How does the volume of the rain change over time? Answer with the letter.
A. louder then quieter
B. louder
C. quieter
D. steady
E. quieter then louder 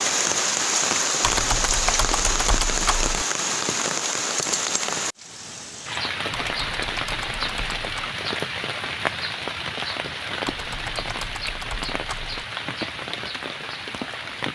C.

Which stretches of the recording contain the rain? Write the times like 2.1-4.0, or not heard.
0.0-14.5.